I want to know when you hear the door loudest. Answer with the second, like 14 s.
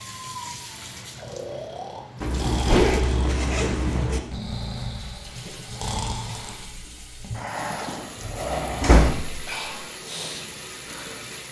9 s.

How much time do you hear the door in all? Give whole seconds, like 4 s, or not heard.
2 s.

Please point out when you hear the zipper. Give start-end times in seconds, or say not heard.
2.2-4.2, 8.5-8.9.